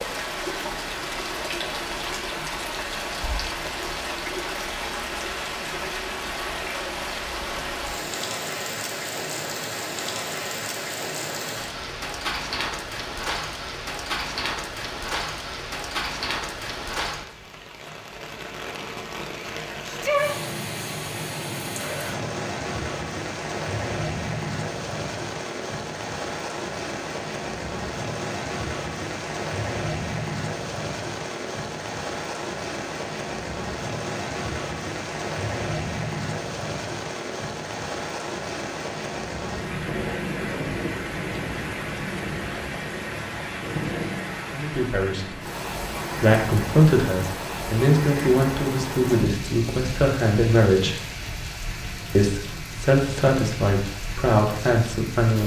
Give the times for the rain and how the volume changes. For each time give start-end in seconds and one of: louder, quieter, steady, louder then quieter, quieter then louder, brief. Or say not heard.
0.0-55.4 steady.